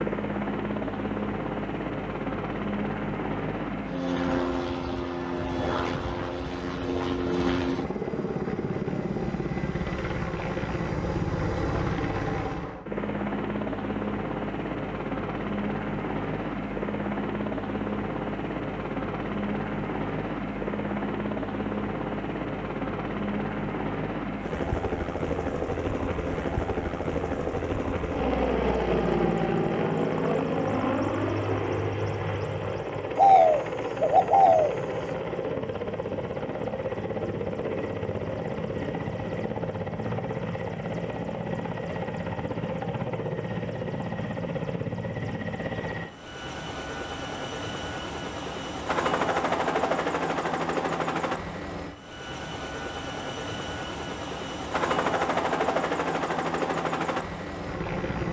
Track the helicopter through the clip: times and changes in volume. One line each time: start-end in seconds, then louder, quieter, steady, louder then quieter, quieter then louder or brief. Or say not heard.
0.0-58.2 steady.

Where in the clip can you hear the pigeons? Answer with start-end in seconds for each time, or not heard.
33.1-34.8.